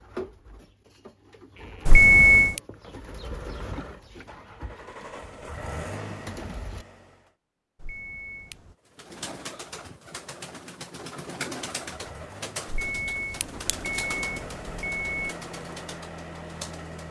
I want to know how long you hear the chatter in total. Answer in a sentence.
You can't hear the chatter here.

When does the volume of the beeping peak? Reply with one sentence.
The loudest moment of the beeping is at 2 seconds.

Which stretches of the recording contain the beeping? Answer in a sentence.
You can hear the beeping from 1.9 to 2.6 s, from 7.8 to 8.6 s and from 12.7 to 15.2 s.